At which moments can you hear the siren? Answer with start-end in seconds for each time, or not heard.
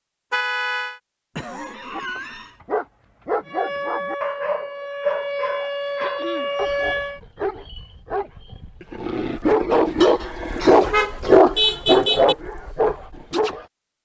3.5-7.2.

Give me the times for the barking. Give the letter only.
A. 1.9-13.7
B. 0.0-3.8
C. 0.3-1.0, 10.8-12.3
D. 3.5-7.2
A.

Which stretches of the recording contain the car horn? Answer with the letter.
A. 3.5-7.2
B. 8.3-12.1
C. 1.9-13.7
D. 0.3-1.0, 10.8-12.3
D.